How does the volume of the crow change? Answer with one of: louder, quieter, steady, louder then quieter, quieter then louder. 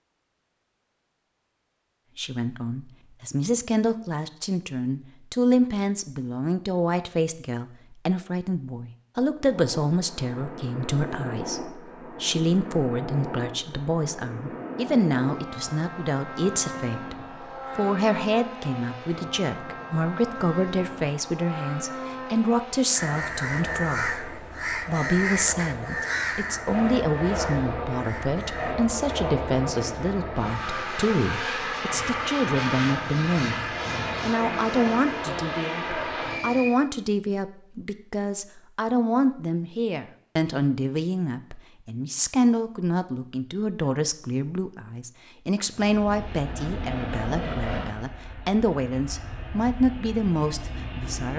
quieter.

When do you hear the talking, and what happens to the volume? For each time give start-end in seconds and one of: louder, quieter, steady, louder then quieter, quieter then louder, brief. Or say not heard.
2.1-51.3 steady.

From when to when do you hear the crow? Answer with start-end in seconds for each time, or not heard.
22.9-28.8.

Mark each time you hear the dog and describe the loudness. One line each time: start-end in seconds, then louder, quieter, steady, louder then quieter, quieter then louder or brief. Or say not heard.
not heard.